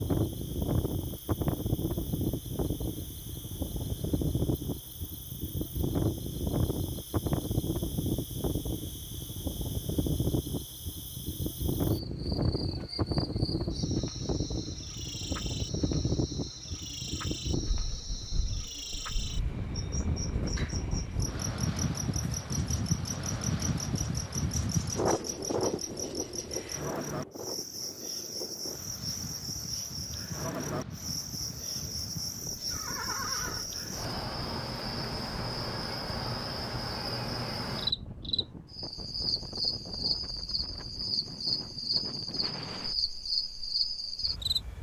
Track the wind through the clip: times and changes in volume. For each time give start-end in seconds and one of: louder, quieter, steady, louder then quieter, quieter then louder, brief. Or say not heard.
0.0-44.7 quieter.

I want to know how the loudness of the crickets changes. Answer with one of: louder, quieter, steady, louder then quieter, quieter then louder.
louder.